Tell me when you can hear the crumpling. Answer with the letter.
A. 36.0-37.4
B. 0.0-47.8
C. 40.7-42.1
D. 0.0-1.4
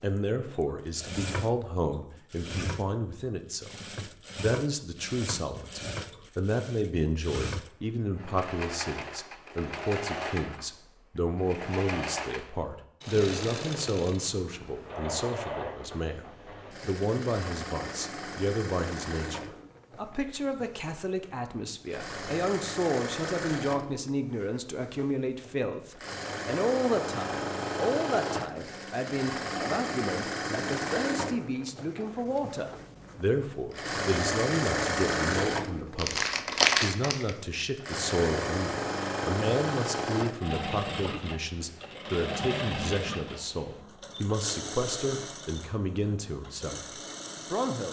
A.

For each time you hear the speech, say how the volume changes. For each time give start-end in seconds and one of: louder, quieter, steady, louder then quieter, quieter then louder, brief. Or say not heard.
0.0-47.8 steady.